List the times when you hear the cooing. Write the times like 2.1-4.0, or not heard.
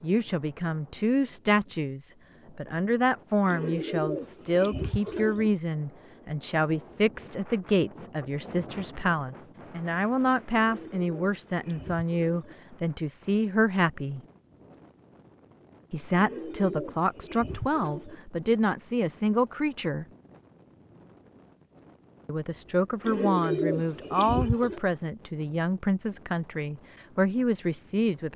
3.5-5.5, 10.5-12.6, 16.1-18.1, 23.0-24.8.